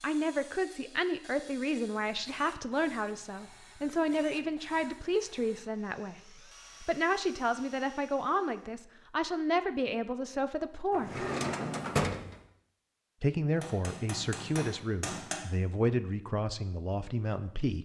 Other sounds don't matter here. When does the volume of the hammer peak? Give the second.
15 s.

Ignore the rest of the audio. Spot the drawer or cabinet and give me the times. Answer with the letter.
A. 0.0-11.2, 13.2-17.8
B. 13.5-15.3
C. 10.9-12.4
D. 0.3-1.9
C.